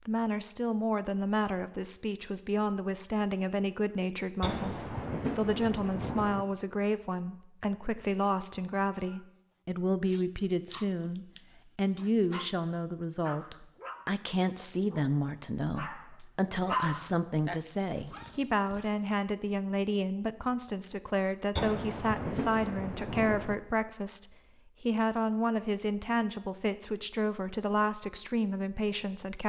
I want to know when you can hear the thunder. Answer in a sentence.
The thunder can be heard from 4.4 to 6.5 s and from 21.6 to 23.6 s.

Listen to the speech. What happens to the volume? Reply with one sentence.
The loudness of the speech stays about the same.